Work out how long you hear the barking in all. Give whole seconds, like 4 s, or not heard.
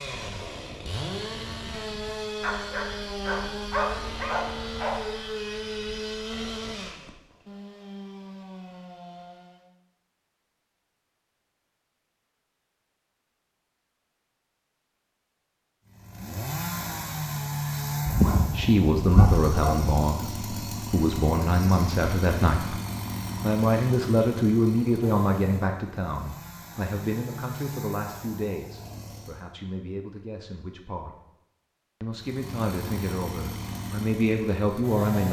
5 s.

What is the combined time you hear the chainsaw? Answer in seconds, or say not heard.
26 s.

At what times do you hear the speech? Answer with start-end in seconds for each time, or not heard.
18.5-22.8, 23.4-31.1, 32.0-35.2.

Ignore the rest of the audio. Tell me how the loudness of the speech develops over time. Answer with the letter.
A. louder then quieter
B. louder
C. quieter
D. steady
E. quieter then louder
E.